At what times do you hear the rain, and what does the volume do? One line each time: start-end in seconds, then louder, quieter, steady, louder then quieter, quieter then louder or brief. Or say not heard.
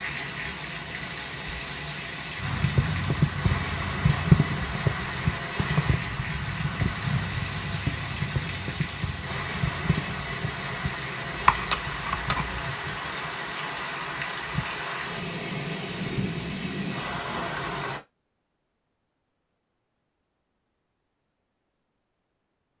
0.0-18.0 steady.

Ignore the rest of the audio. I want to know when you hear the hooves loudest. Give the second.
4 s.